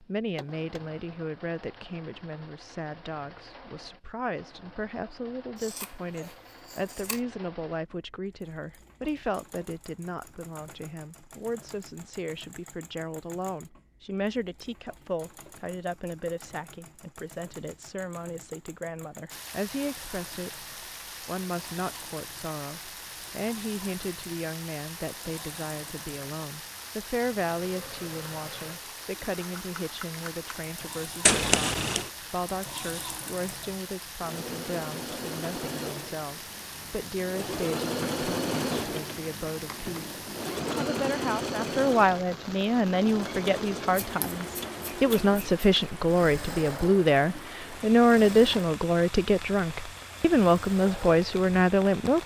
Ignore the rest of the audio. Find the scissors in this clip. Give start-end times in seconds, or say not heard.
5.5-7.2, 31.2-32.1, 44.0-45.6.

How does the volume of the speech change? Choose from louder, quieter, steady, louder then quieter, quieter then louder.
louder.